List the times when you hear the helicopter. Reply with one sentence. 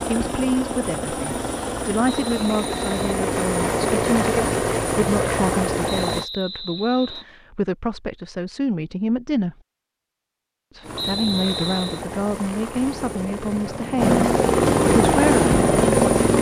You can hear the helicopter from 0.0 to 6.2 s and from 10.8 to 16.3 s.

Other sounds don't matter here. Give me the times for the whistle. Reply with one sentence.
The whistle can be heard from 2.0 to 3.1 s, from 5.8 to 7.2 s and from 10.9 to 12.0 s.